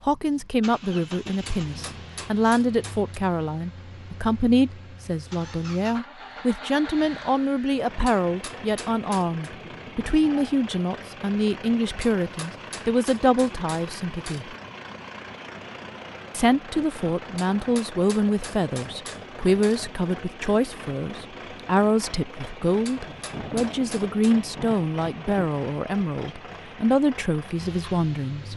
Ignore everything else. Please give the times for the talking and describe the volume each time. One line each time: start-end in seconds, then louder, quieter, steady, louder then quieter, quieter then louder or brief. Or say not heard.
0.1-14.6 steady
16.3-28.5 steady.